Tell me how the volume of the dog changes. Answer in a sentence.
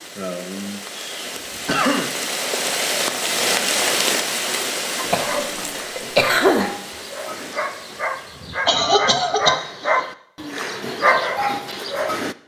The volume of the dog goes up.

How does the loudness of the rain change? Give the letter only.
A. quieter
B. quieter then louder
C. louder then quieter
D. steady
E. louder
C.